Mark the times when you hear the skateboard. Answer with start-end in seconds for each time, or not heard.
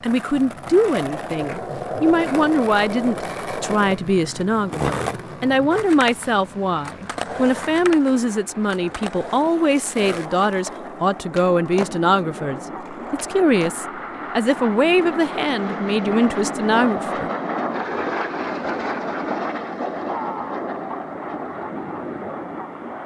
0.0-13.8.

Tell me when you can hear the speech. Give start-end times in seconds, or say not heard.
0.0-17.3.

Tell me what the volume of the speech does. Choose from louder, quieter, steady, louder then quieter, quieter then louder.
steady.